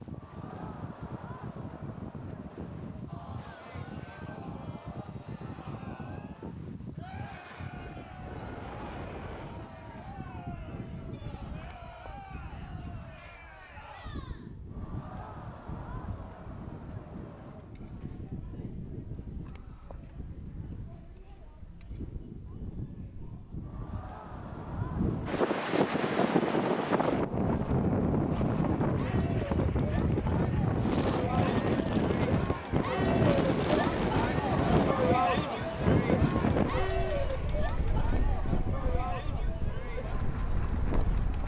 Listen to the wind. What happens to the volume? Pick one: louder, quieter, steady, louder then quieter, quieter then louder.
louder.